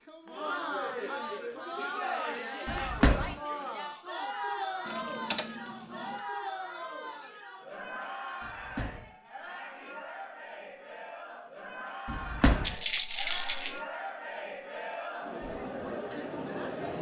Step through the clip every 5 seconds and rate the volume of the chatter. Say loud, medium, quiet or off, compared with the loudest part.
loud, medium, medium, loud.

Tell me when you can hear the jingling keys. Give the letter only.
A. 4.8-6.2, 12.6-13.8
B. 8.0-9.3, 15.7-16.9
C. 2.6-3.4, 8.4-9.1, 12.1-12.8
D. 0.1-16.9
A.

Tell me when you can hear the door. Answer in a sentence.
The door can be heard from 2.6 to 3.4 s, from 8.4 to 9.1 s and from 12.1 to 12.8 s.